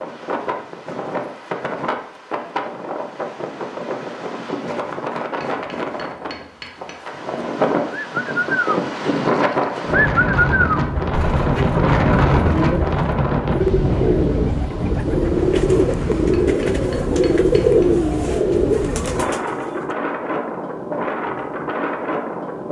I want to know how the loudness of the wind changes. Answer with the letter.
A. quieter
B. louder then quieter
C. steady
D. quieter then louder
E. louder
B.